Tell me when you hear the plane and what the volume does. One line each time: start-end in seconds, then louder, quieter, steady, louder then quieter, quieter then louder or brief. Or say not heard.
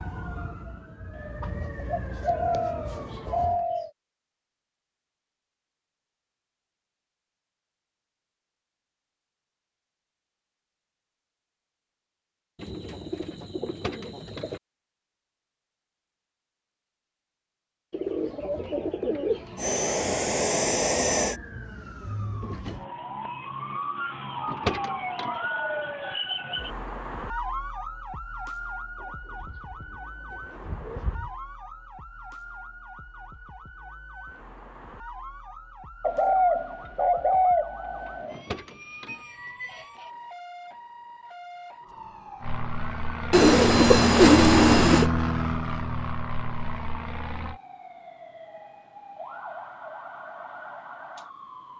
19.6-21.4 brief
42.4-47.6 louder then quieter.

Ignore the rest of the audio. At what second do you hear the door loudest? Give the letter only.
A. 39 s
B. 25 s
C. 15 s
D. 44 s
B.